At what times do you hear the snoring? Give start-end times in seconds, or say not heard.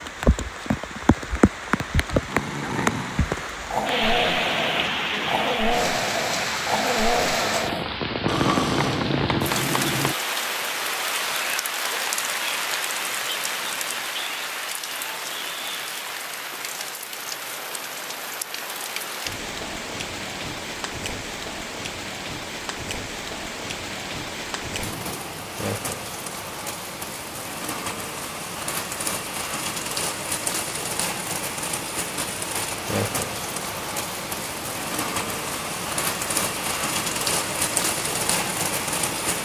2.2-10.2.